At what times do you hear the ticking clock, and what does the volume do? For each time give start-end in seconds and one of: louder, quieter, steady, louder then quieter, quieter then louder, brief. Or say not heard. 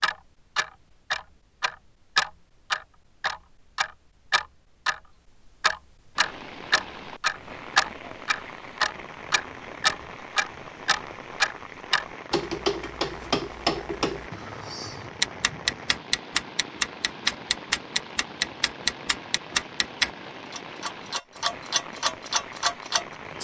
0.0-23.3 steady.